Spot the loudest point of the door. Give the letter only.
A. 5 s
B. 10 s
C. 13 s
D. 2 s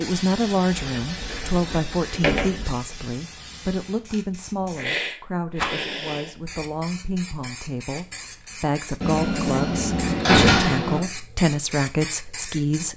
B.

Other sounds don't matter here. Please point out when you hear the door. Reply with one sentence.
You can hear the door from 0.7 to 2.7 s and from 9.0 to 11.0 s.